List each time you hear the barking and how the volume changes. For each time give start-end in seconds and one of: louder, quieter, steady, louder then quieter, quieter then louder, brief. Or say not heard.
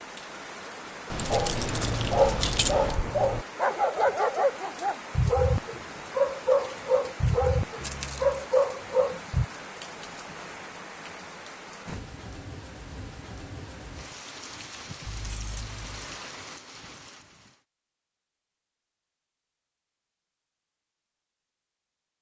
1.3-9.4 steady.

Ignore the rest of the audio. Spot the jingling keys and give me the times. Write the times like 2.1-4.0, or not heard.
1.1-3.0, 7.8-8.4, 15.1-16.1.